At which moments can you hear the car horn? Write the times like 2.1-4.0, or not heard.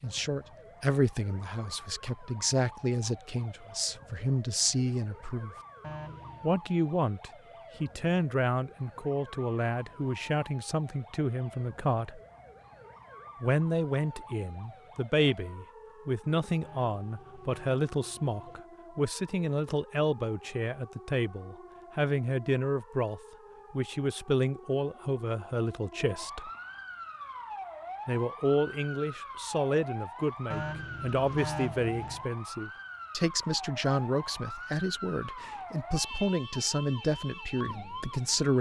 5.8-6.5, 16.6-18.6, 30.5-32.2.